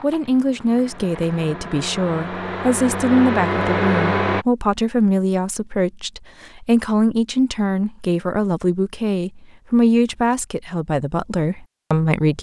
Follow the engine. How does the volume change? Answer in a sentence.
The volume of the engine goes up.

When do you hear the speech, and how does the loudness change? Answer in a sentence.
The speech can be heard from 0.0 to 12.3 s, at a steady volume.